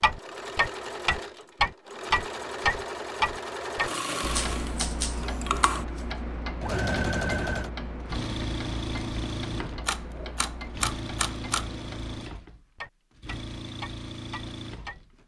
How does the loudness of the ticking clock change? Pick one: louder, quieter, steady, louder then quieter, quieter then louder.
quieter.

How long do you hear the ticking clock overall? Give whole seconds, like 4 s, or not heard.
15 s.